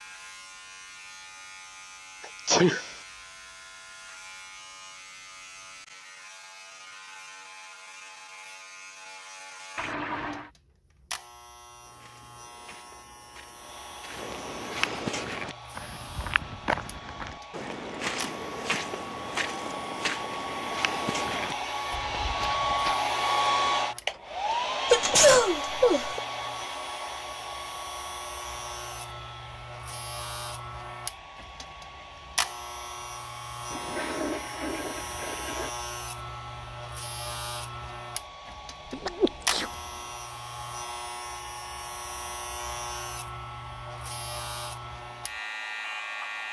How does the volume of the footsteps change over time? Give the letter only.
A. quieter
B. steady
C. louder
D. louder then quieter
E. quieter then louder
C.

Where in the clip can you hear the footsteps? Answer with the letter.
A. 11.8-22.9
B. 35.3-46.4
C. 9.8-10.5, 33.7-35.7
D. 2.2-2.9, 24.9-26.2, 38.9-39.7
A.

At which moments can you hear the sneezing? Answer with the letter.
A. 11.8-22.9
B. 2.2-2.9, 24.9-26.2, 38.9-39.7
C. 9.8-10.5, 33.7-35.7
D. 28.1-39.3
B.